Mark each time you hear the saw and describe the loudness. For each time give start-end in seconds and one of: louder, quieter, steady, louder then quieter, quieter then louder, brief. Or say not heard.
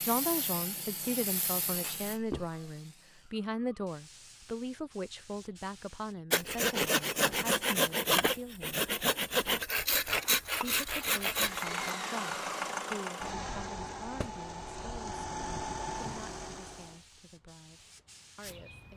6.3-11.9 steady.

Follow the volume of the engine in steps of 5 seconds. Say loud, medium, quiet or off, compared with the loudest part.
off, off, loud, loud.